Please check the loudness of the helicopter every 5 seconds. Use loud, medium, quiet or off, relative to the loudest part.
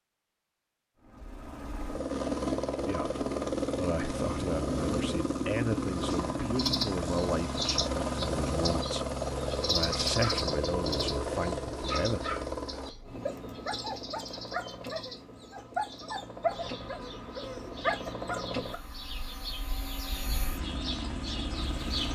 loud, loud, loud, medium, medium.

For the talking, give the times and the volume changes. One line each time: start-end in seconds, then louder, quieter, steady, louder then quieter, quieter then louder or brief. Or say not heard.
2.9-12.2 steady.